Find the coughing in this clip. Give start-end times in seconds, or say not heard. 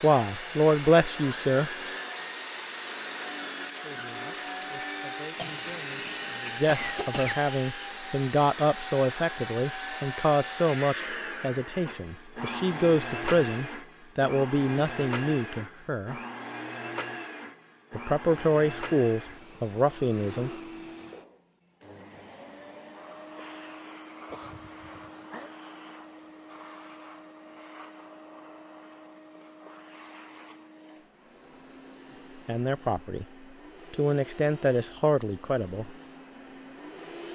5.3-7.3, 24.3-25.5.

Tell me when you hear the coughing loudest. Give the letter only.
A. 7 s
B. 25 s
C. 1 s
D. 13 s
A.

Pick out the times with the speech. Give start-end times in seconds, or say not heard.
0.0-1.7, 3.8-16.1, 17.9-20.5, 32.5-33.2, 33.9-35.9.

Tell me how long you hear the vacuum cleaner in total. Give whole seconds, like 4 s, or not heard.
37 s.